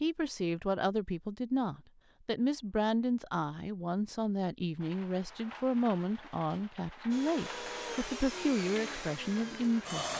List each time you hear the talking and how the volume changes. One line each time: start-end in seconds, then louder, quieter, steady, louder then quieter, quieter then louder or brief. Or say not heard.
0.0-10.1 steady.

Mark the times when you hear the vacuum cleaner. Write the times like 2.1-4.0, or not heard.
7.1-10.1.